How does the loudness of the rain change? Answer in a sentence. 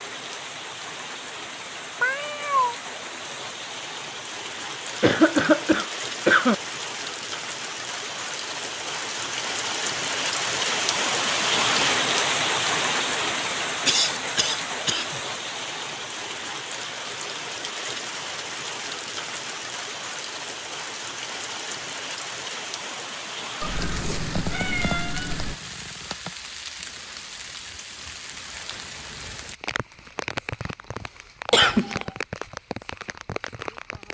The loudness of the rain goes up, then down.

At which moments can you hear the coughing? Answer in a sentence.
The coughing can be heard from 5.0 to 6.5 s, from 13.8 to 15.2 s and from 31.5 to 32.0 s.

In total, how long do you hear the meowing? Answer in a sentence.
The meowing can be heard for 3 seconds in total.